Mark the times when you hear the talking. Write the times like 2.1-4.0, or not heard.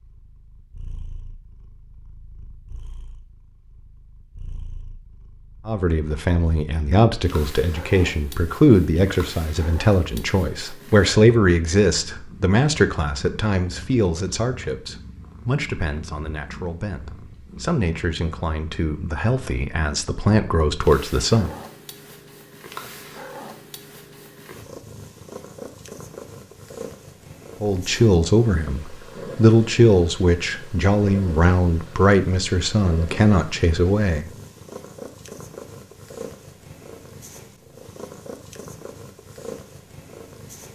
5.7-21.6, 27.6-34.3.